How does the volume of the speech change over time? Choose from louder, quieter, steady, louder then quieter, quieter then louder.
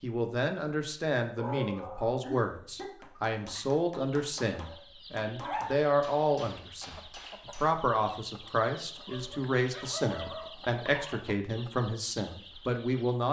steady.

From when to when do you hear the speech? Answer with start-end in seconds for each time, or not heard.
0.0-13.2.